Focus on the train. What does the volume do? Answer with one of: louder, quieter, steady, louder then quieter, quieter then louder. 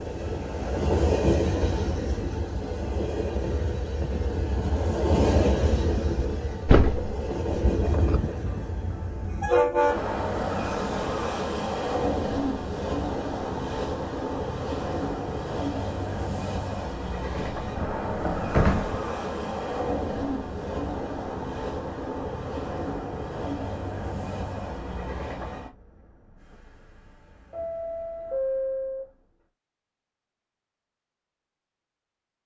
quieter.